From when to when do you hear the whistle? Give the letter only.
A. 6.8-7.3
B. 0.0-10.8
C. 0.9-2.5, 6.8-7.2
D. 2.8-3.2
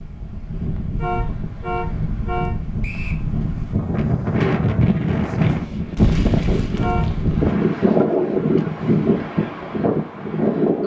D.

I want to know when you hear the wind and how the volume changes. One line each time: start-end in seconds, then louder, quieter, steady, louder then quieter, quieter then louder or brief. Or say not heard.
0.0-10.8 louder.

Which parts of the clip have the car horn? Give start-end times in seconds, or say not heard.
0.9-2.5, 6.8-7.2.